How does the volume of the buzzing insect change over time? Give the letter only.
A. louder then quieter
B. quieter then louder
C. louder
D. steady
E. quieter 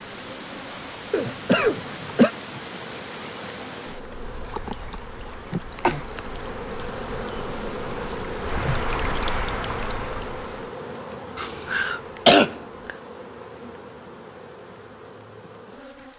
A.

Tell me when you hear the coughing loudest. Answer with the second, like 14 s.
12 s.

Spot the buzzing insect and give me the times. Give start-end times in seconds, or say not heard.
0.0-16.1.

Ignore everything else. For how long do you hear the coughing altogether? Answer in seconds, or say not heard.
3 s.